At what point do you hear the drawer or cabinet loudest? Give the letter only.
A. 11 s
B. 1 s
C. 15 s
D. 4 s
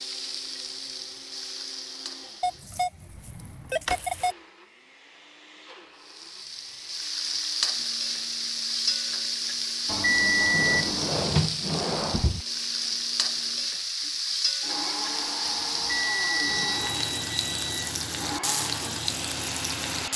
A.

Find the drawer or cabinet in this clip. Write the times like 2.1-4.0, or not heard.
3.1-4.0, 10.5-12.4.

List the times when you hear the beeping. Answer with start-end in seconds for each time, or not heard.
2.4-4.3, 9.8-11.1, 15.4-17.9.